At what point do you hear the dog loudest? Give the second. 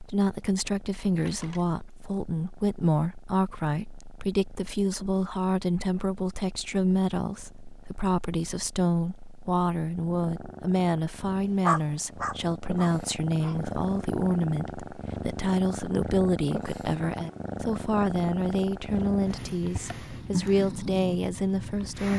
12 s.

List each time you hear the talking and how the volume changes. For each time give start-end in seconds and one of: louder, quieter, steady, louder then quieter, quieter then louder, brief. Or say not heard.
0.0-22.1 steady.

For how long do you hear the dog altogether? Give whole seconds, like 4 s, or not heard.
2 s.